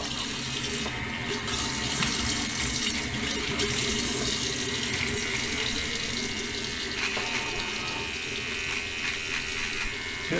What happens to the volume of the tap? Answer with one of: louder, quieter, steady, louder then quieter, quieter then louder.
quieter.